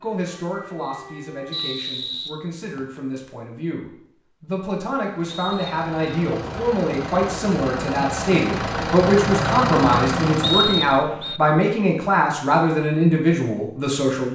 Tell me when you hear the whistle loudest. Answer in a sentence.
The loudest moment of the whistle is at 11 seconds.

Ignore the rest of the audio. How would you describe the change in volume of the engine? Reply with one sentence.
The volume of the engine goes up.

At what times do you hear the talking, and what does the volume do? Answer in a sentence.
You can hear the talking from 0.0 to 14.3 s, getting louder.